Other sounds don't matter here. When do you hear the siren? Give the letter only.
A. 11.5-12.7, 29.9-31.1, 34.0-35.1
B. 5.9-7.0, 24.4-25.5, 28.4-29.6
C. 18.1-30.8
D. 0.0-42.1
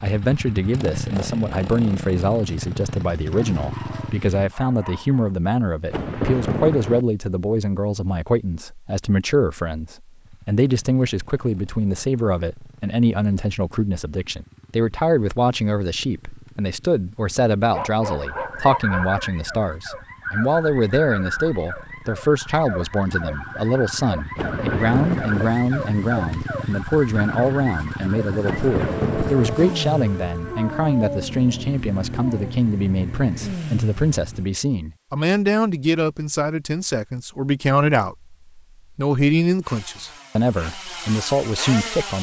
C.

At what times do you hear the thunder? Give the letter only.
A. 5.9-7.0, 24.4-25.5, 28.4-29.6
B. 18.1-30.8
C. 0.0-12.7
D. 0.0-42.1
A.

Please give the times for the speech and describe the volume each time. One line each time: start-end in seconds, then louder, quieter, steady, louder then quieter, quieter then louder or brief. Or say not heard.
0.0-42.1 steady.